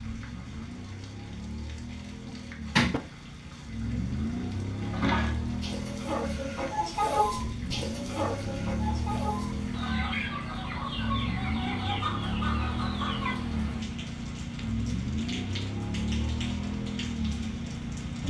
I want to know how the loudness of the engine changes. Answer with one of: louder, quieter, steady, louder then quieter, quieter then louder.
louder.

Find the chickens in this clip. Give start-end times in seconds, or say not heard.
4.8-13.3.